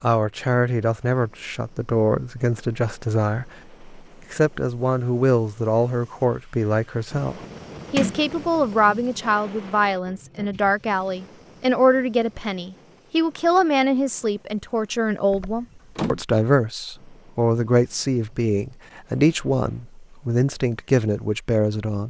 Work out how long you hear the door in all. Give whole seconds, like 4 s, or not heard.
2 s.